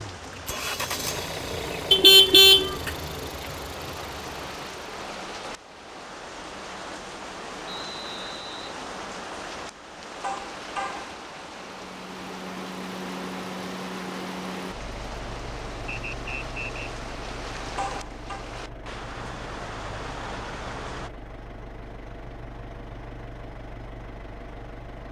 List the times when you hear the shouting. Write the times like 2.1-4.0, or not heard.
not heard.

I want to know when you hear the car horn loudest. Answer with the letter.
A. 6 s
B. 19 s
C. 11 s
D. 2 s
D.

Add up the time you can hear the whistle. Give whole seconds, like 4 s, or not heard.
2 s.